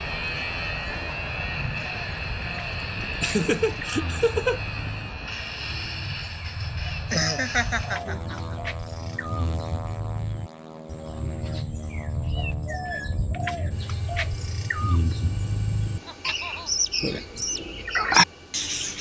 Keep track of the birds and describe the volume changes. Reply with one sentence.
The loudness of the birds goes up.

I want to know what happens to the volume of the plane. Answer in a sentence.
The volume of the plane goes down.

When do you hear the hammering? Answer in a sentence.
You can't hear the hammering here.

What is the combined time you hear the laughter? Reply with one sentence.
The laughter can be heard for 4 seconds in total.